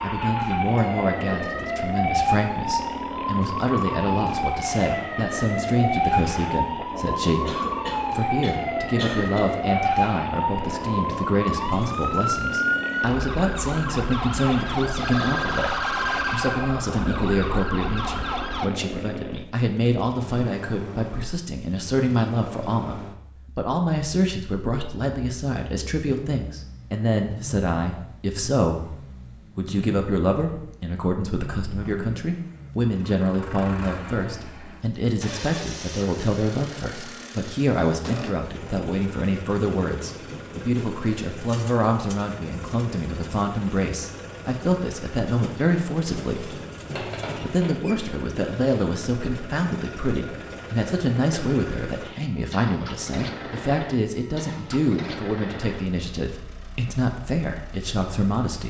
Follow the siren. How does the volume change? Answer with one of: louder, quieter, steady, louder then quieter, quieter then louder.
steady.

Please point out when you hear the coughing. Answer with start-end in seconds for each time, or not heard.
7.5-9.4, 46.9-47.7.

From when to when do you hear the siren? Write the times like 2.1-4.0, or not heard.
0.0-18.7.